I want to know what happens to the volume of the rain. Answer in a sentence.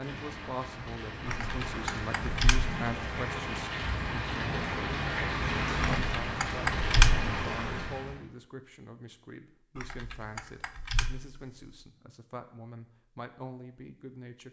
The volume of the rain goes up.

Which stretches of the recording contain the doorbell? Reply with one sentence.
The doorbell can't be heard in this clip.